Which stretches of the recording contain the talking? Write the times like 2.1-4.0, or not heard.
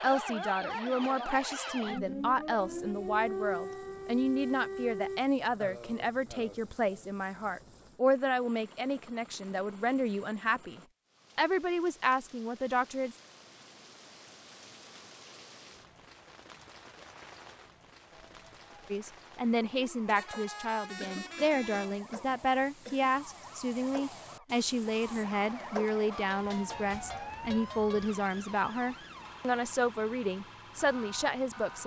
0.0-13.2, 18.9-31.8.